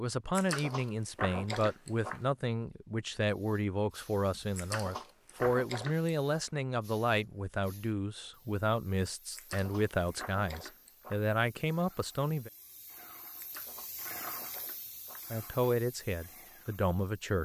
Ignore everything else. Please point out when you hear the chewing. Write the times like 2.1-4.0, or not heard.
0.3-2.2, 4.5-6.1, 9.3-11.2, 13.3-15.2.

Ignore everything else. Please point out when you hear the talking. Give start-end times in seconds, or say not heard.
0.0-12.5, 15.3-17.3.